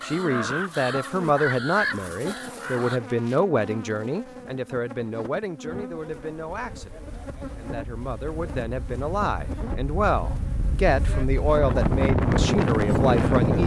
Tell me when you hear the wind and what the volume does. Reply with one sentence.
You can hear the wind from 5.6 to 13.6 s, getting louder.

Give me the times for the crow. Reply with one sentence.
You can hear the crow from 0.0 to 3.0 s.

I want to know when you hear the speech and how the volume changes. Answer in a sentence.
The speech can be heard from 0.0 to 13.6 s, getting quieter then louder.